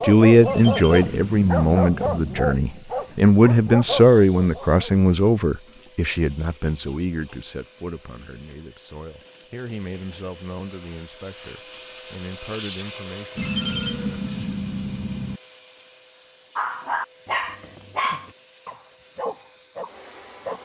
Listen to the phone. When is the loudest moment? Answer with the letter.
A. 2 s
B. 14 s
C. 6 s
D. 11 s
B.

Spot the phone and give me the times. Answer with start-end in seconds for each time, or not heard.
0.5-2.5, 13.3-15.4.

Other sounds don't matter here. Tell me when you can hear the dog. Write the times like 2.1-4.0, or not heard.
0.0-5.0, 16.6-20.6.